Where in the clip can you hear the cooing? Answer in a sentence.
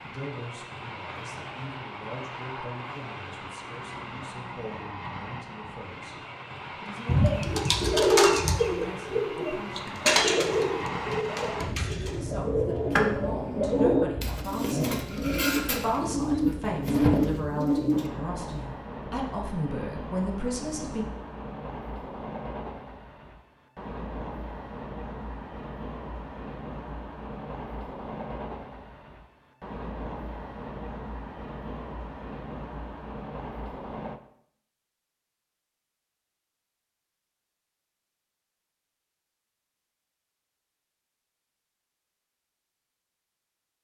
You can hear the cooing from 7.0 to 18.1 s.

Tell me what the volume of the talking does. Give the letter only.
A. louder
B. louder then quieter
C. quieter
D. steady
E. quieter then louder
A.